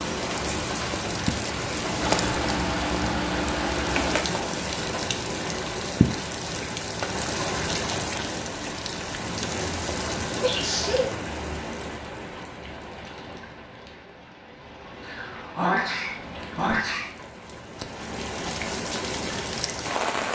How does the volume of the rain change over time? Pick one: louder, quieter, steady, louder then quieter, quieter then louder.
quieter then louder.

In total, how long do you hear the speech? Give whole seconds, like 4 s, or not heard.
not heard.